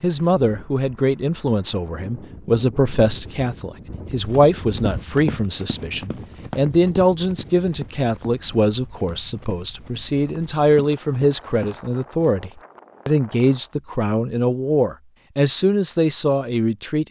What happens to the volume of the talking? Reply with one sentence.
The loudness of the talking stays about the same.